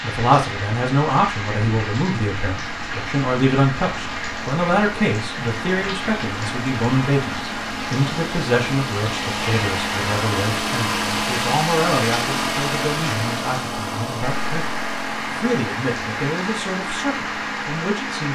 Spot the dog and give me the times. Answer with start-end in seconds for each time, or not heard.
not heard.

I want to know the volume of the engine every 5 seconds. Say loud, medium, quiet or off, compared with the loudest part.
medium, medium, loud, medium.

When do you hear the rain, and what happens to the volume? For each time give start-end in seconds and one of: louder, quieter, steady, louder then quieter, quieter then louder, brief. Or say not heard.
0.0-18.3 steady.